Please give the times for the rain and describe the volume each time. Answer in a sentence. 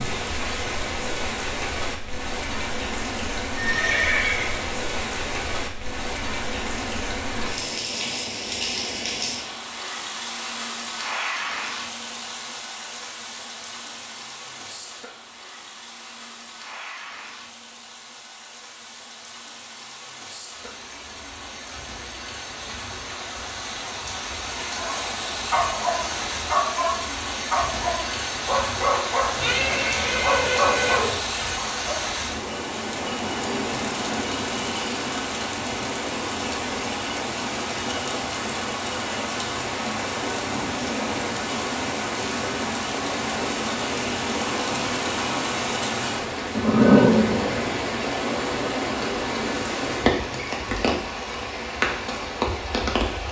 You can hear the rain from 0.0 to 53.2 s, getting quieter then louder.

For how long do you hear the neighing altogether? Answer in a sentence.
The neighing can be heard for 4 seconds in total.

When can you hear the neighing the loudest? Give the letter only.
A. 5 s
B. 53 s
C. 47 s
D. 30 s
C.